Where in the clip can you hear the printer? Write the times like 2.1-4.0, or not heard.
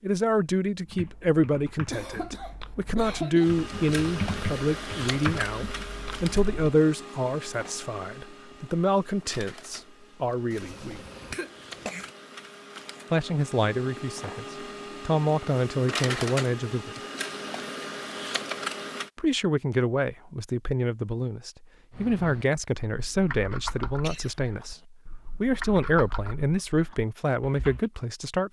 3.4-19.1.